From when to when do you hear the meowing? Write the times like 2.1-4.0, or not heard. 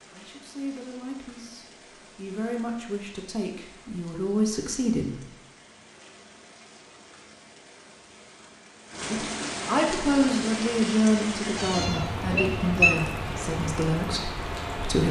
11.6-12.9.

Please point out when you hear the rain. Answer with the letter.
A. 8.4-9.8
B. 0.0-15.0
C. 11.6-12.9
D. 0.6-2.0
B.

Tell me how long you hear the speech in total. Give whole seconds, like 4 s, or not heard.
11 s.